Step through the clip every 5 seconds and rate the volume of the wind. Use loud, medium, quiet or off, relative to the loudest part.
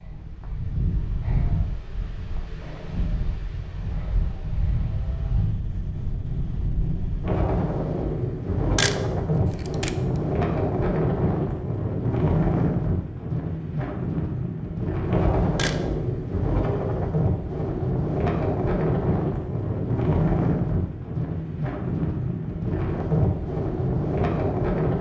medium, loud, loud, loud, loud.